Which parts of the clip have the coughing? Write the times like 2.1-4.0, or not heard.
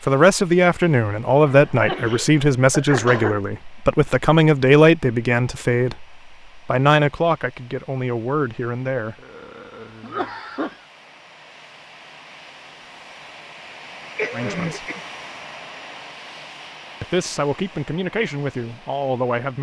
1.4-3.5, 9.2-10.8, 14.2-15.0.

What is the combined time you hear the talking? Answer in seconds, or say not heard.
12 s.